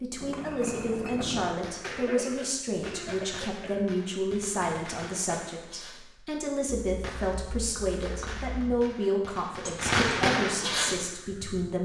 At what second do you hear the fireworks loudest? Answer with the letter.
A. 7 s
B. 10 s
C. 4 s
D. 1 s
B.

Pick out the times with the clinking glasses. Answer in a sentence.
You can hear the clinking glasses from 0.2 to 1.4 s and from 6.7 to 8.6 s.